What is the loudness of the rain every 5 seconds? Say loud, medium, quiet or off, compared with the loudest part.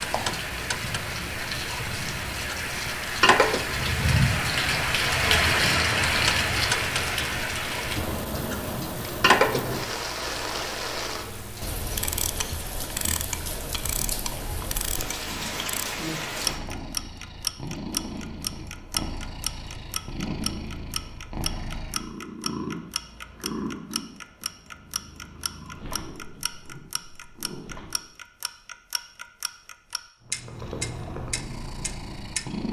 loud, loud, medium, medium, off, off, off.